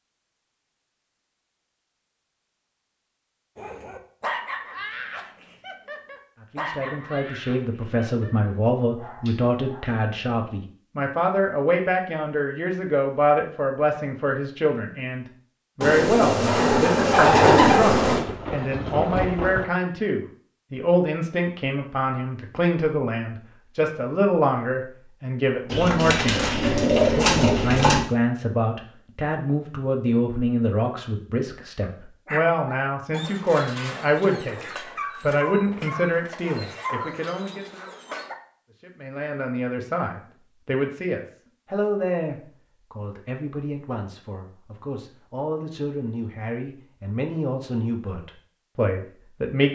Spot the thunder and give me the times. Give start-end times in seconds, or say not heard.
18.1-19.6.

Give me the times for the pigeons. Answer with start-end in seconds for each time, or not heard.
15.8-18.2, 25.7-28.0.